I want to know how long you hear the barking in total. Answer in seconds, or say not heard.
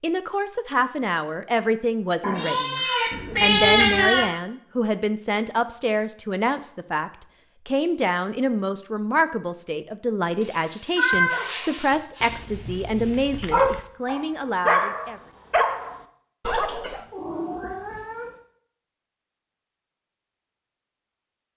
6 s.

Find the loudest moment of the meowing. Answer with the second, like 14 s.
4 s.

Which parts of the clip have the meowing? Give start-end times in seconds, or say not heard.
2.2-4.2, 10.4-12.2, 16.5-18.2.